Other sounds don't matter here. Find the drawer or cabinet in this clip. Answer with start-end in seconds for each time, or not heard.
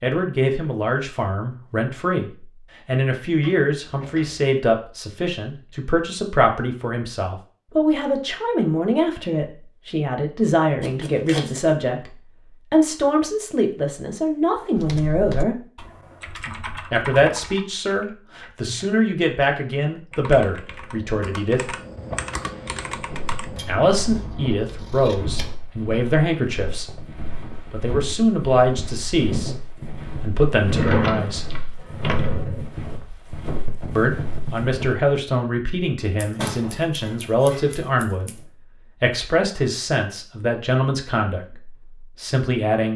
3.4-4.5, 21.9-22.8, 30.6-32.6.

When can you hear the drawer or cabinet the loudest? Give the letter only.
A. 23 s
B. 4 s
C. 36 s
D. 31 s
D.